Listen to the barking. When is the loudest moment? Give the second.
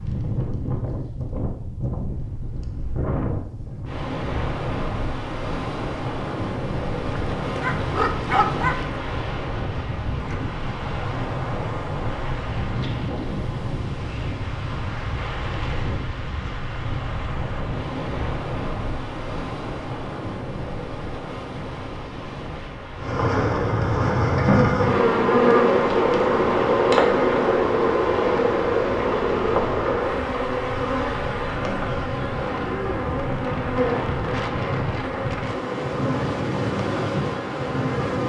9 s.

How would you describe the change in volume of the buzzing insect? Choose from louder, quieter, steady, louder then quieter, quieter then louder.
quieter.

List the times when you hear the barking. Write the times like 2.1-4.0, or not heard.
7.0-9.0.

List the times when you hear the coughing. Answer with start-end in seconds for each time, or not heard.
not heard.